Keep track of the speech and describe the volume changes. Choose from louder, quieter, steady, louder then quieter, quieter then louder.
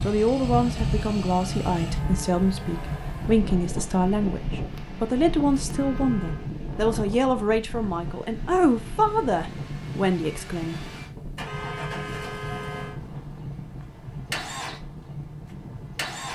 steady.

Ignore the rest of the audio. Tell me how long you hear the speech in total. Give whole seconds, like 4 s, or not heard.
11 s.